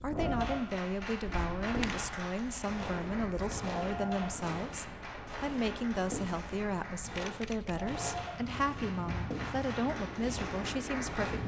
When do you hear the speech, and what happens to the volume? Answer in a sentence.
You can hear the speech from 0.0 to 11.4 s, at a steady volume.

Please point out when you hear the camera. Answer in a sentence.
The camera can be heard from 1.2 to 1.9 s and from 7.1 to 7.8 s.